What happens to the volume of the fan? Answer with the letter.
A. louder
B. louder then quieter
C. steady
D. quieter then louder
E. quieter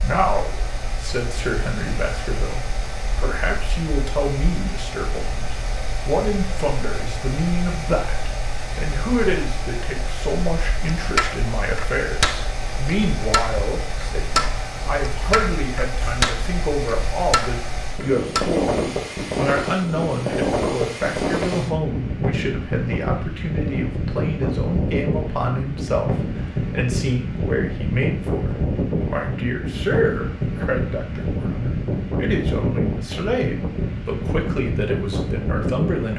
A.